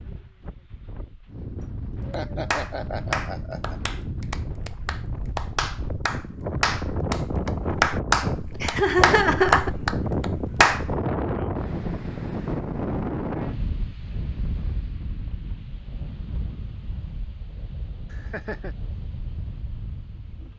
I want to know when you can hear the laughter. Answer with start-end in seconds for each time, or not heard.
1.6-3.8, 8.6-9.7, 18.1-18.8.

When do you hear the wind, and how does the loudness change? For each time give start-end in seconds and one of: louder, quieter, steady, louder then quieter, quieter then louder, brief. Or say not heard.
0.0-20.5 louder then quieter.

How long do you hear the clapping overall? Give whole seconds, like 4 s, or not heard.
9 s.